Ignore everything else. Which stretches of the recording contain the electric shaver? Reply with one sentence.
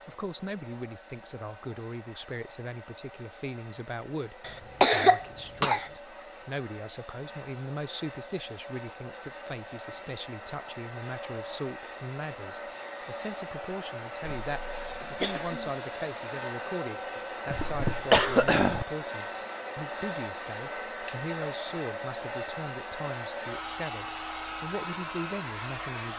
You can't hear the electric shaver here.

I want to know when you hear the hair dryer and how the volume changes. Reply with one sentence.
You can hear the hair dryer from 0.0 to 26.1 s, getting louder.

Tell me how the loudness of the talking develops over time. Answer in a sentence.
The loudness of the talking stays about the same.